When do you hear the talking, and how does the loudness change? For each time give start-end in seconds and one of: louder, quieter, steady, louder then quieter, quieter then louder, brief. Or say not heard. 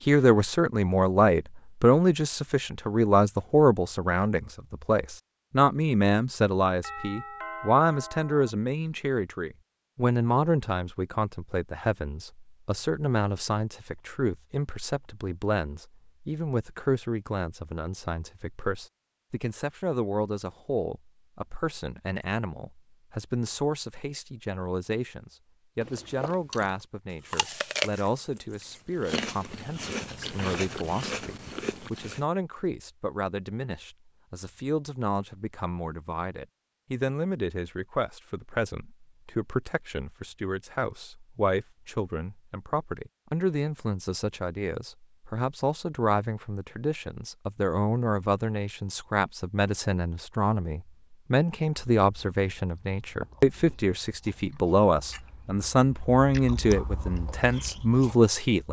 0.1-58.6 quieter then louder.